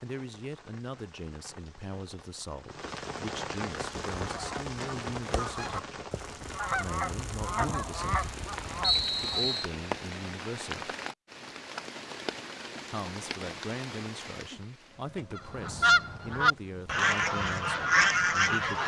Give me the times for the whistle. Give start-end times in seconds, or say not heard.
8.8-9.7.